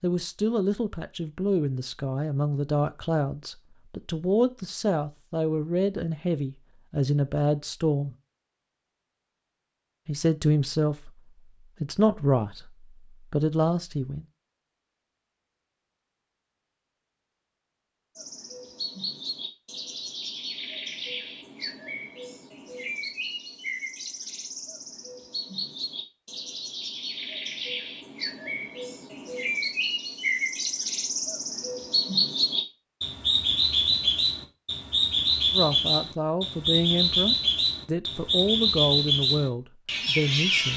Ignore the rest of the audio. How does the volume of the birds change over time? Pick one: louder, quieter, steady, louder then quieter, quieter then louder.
louder.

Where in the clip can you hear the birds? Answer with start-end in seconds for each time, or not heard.
18.1-40.7.